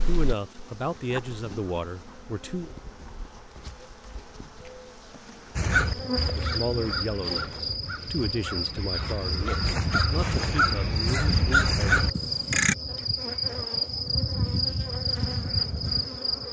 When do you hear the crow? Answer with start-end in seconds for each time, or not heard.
5.5-12.8.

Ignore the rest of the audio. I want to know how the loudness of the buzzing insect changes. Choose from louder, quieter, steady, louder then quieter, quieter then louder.
louder.